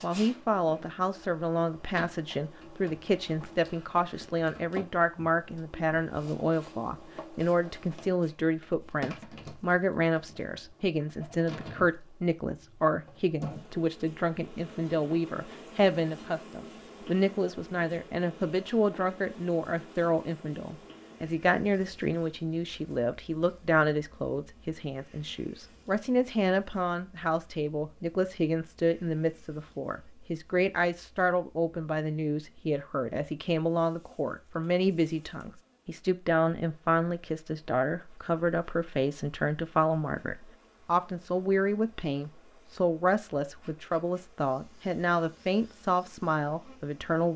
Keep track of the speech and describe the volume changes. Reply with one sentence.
The volume of the speech stays about the same.